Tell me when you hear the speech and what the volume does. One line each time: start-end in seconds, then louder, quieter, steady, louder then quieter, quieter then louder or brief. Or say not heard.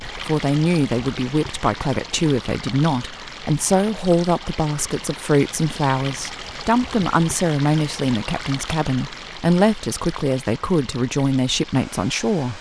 0.1-12.5 steady.